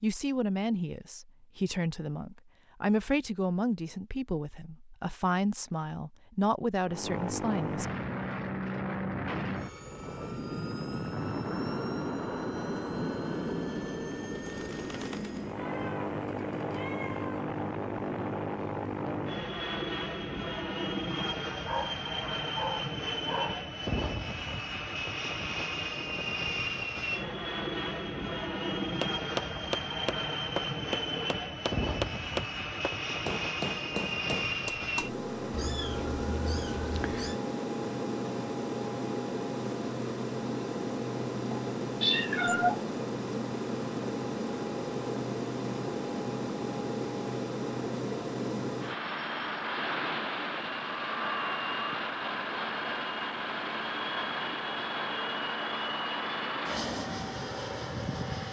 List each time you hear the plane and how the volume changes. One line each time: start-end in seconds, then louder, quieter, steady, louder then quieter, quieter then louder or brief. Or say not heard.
6.8-58.4 steady.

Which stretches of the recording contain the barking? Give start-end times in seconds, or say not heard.
21.1-23.6.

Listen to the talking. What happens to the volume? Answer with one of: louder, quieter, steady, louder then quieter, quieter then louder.
steady.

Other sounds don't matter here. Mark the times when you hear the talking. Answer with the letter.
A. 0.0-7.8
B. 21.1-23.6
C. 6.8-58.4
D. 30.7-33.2
A.